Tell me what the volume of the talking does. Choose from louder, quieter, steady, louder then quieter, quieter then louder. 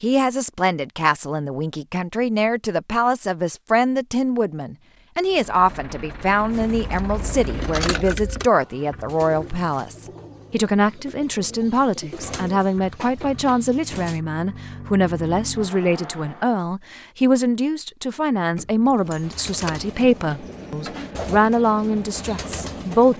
steady.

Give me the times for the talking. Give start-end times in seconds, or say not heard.
0.0-23.1.